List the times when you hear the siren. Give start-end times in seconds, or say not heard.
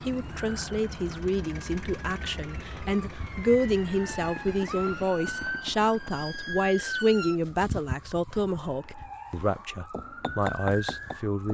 0.0-11.5.